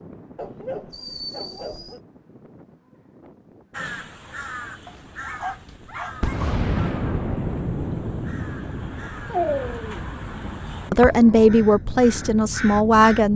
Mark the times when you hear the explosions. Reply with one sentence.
The explosions can be heard from 6.2 to 9.0 s.